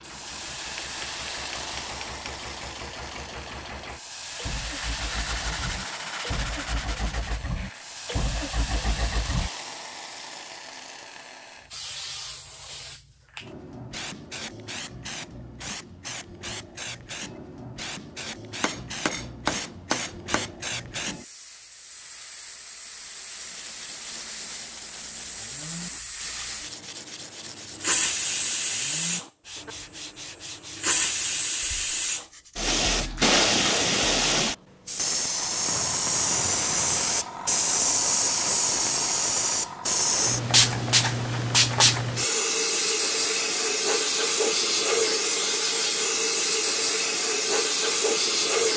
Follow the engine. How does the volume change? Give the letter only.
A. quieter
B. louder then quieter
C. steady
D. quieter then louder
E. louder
E.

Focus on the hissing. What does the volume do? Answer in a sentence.
The loudness of the hissing goes up.